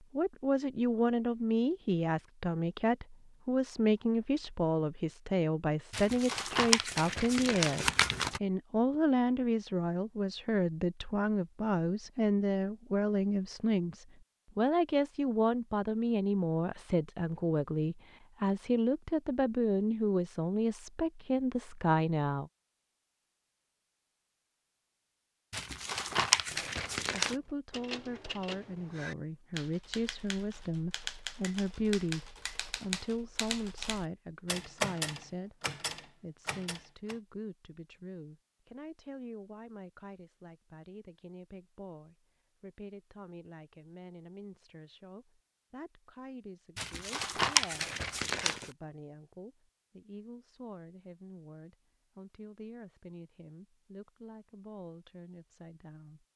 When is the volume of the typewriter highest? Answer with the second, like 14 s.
35 s.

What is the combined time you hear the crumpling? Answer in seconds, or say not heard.
6 s.